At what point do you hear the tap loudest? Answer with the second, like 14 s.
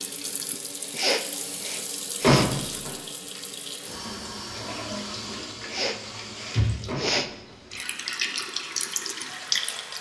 9 s.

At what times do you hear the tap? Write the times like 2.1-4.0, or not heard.
0.0-9.9.